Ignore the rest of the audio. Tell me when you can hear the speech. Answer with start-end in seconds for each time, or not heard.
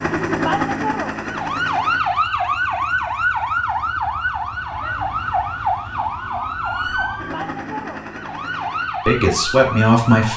9.1-10.3.